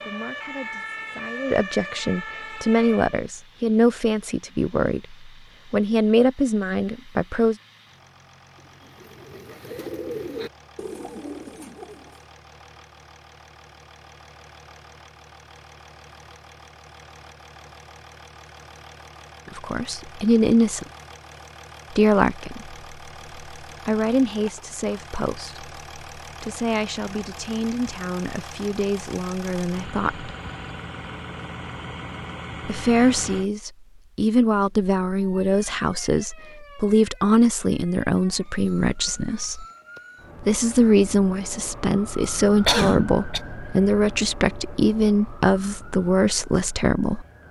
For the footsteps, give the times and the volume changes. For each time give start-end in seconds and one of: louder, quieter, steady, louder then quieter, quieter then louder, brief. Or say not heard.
not heard.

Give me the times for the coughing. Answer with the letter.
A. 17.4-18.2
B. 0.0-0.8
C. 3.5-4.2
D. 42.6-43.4
D.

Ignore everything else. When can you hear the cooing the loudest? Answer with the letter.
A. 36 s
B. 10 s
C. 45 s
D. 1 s
B.